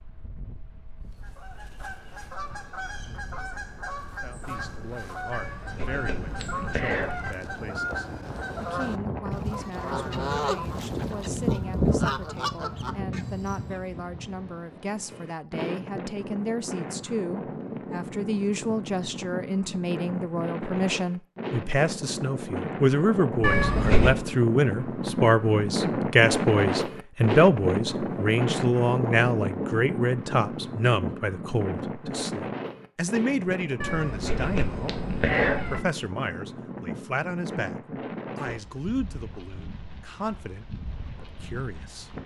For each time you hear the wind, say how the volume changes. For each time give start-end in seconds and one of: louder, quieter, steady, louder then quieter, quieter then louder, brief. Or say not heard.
0.0-42.2 louder then quieter.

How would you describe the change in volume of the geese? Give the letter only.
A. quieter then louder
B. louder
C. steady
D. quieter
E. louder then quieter
B.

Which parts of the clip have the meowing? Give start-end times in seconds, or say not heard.
5.3-7.3, 23.4-24.1, 33.8-35.8.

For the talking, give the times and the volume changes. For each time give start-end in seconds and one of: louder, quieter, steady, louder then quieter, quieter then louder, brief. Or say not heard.
4.2-42.1 louder then quieter.